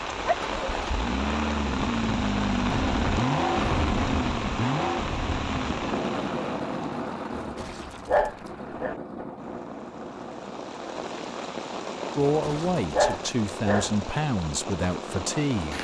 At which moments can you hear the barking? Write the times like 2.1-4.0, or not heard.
0.1-0.9, 7.3-8.9, 12.4-13.9.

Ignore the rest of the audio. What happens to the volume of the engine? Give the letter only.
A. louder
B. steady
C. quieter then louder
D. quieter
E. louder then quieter
D.